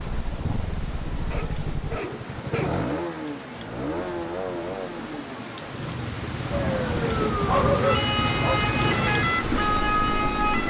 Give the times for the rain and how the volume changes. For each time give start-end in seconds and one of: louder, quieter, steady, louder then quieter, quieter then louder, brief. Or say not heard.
0.0-10.6 louder.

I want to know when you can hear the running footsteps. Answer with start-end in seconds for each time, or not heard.
not heard.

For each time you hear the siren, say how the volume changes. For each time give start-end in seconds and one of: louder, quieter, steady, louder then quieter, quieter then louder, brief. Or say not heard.
6.5-10.6 steady.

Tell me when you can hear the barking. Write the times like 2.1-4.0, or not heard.
1.3-2.9, 7.5-8.7.